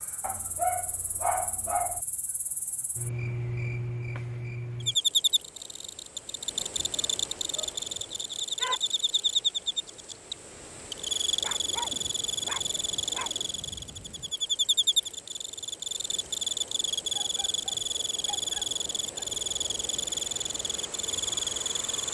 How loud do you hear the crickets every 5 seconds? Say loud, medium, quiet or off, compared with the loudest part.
medium, loud, loud, loud, loud.